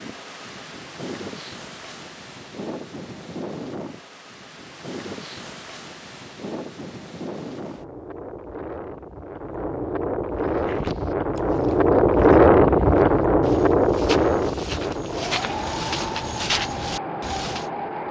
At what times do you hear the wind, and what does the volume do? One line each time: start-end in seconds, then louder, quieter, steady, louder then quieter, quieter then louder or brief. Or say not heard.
0.0-18.0 louder then quieter.